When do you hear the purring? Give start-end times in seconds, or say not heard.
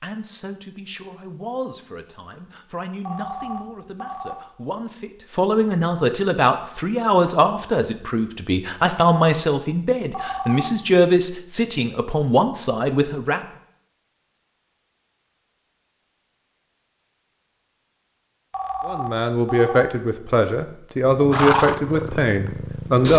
21.1-23.1.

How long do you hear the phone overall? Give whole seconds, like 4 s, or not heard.
3 s.